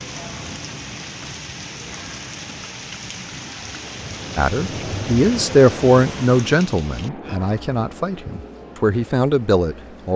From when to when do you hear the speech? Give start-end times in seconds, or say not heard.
4.3-10.1.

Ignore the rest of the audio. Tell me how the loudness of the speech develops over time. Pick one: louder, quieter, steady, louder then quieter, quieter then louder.
quieter then louder.